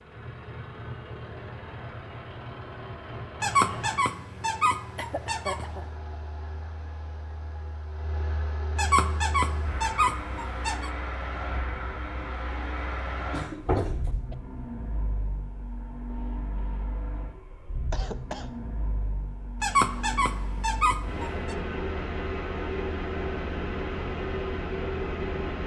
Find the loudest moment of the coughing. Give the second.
14 s.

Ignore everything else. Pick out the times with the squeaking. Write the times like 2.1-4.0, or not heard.
3.4-5.8, 8.8-10.9, 19.6-21.6.